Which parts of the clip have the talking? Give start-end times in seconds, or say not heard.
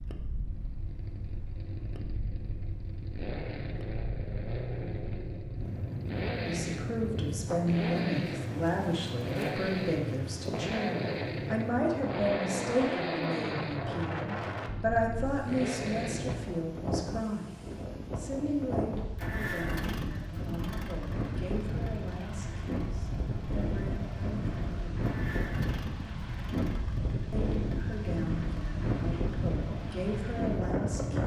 6.5-25.1, 27.3-31.2.